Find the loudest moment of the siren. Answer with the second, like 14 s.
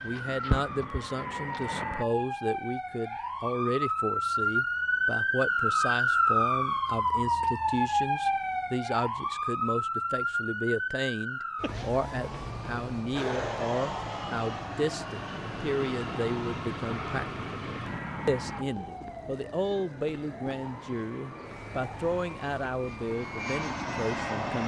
6 s.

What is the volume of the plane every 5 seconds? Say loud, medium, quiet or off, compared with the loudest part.
loud, off, loud, loud, loud.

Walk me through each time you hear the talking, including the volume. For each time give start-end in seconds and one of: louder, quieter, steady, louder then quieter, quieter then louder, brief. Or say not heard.
0.0-24.6 steady.